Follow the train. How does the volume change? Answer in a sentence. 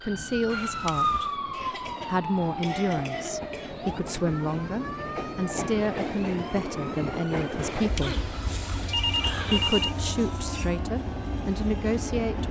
The volume of the train goes up.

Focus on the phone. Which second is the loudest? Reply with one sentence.
The loudest moment of the phone is at 10 seconds.